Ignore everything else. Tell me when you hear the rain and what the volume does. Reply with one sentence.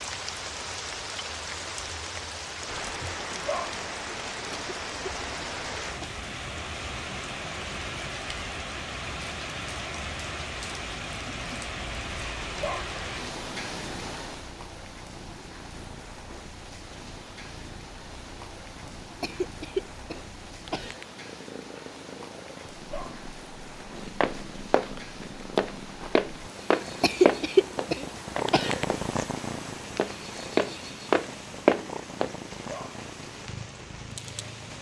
You can hear the rain from 0.0 to 34.7 s, getting quieter.